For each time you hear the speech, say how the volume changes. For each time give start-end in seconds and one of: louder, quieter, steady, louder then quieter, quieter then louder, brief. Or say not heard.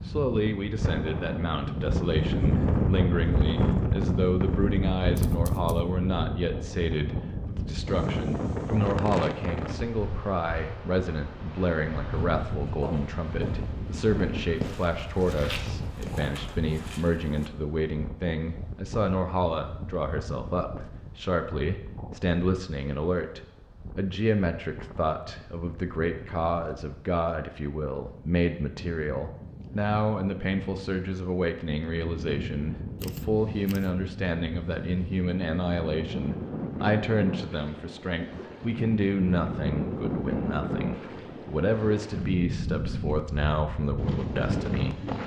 0.0-45.1 steady.